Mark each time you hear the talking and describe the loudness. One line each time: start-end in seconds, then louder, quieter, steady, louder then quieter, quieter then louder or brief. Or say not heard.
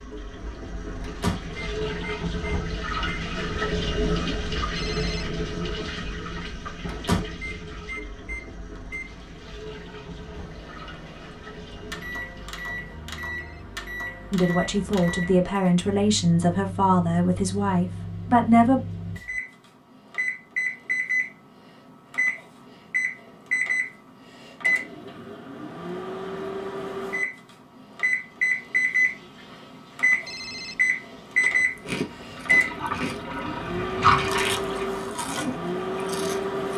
14.3-18.8 steady.